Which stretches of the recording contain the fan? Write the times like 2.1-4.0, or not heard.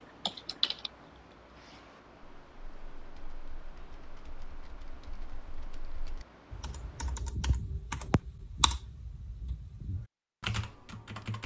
0.0-7.2.